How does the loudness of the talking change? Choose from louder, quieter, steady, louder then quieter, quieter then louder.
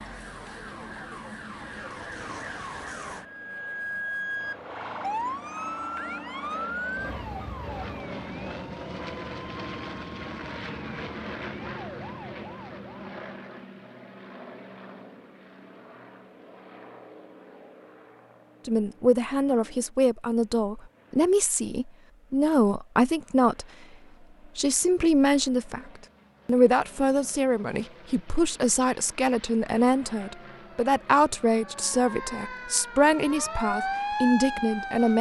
steady.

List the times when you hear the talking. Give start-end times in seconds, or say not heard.
18.6-23.6, 24.6-35.1.